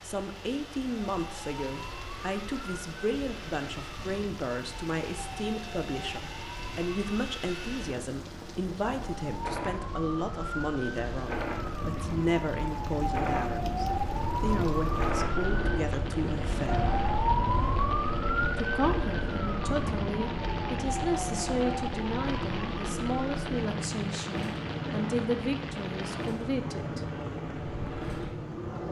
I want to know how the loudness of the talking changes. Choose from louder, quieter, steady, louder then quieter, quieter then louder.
steady.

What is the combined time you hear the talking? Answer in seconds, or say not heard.
25 s.